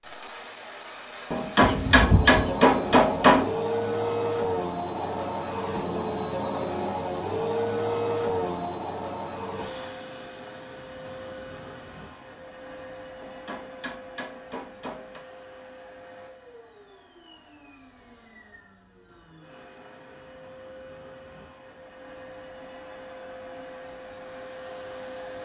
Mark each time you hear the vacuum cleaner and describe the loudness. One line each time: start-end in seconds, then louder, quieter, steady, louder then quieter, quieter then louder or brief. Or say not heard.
0.0-25.4 quieter then louder.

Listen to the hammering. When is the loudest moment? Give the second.
3 s.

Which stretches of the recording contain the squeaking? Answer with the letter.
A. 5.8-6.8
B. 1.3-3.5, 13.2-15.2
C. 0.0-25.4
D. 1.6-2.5
D.